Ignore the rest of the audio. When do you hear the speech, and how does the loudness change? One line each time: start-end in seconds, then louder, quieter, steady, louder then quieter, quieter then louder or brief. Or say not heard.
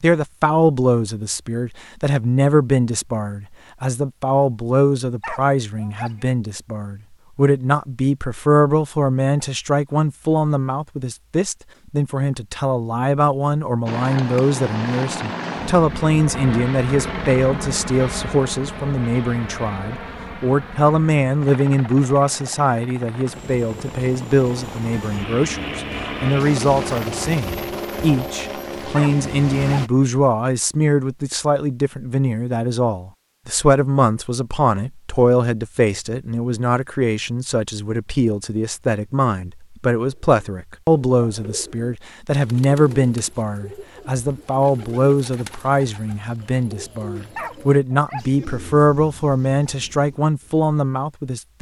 0.0-51.5 steady.